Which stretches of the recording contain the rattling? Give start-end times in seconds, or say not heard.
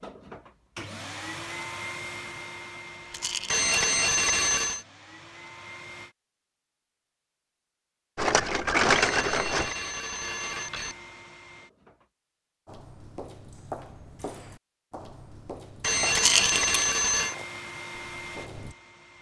3.1-3.6, 8.2-9.7, 16.1-16.6.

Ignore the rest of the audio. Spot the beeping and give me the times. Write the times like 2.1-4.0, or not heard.
3.5-4.8, 8.9-10.9, 15.8-17.4.